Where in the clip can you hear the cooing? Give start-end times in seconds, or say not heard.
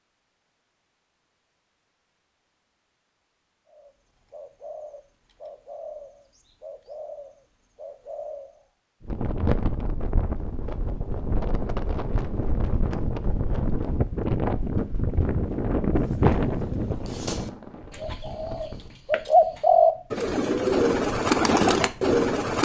3.6-8.6, 15.9-22.5.